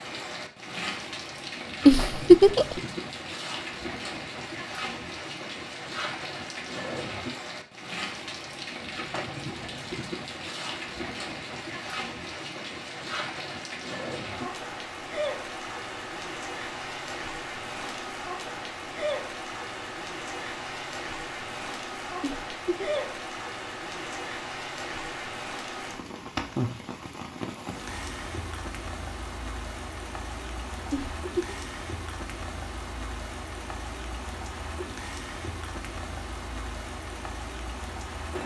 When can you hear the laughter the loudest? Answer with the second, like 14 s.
2 s.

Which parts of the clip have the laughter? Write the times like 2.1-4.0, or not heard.
1.9-2.8, 22.2-23.0, 30.9-31.6.